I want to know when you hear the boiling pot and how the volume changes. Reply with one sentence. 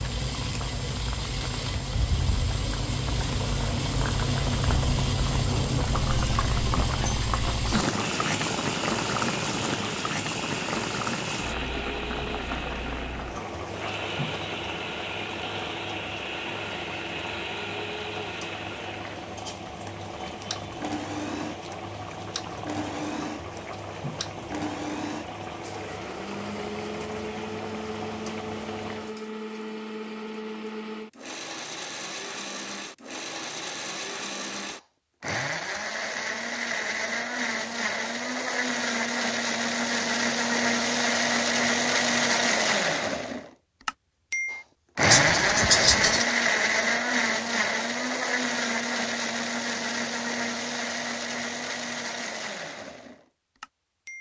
You can hear the boiling pot from 0.0 to 29.2 s, getting quieter.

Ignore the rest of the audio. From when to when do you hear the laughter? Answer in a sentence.
You can hear the laughter from 45.1 to 46.2 s.